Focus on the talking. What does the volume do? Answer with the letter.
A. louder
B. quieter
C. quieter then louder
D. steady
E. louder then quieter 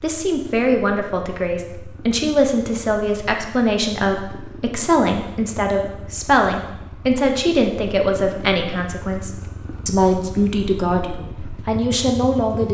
D.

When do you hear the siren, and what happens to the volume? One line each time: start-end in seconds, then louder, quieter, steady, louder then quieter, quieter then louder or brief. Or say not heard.
not heard.